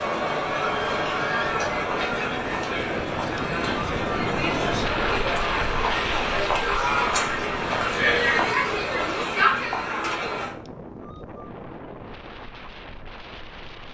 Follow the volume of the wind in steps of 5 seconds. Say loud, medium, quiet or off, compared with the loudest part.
loud, loud, medium.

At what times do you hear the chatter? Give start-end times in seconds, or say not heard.
0.0-10.6.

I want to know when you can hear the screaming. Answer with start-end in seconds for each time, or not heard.
0.6-1.6.